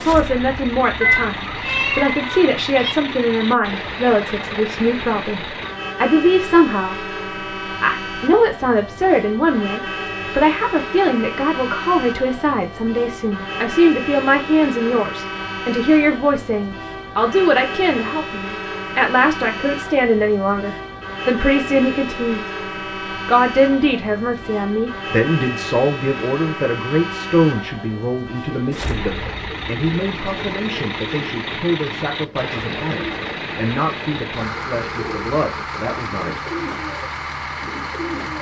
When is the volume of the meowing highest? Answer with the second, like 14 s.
1 s.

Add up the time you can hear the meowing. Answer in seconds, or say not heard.
2 s.